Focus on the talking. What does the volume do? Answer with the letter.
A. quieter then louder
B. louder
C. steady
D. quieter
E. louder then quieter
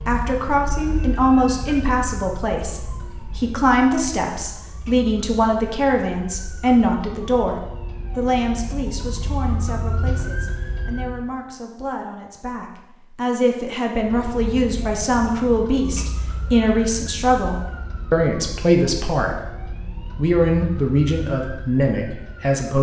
A.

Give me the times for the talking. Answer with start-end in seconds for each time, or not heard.
0.1-22.7.